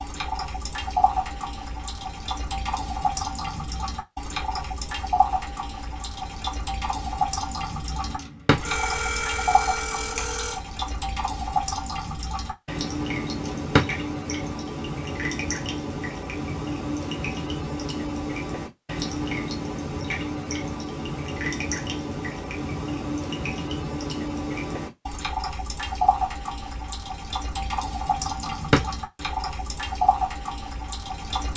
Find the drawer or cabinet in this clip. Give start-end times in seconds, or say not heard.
7.9-8.6, 13.2-13.8, 28.1-28.9.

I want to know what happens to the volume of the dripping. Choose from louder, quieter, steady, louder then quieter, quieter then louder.
steady.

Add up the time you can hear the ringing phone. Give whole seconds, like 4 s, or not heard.
2 s.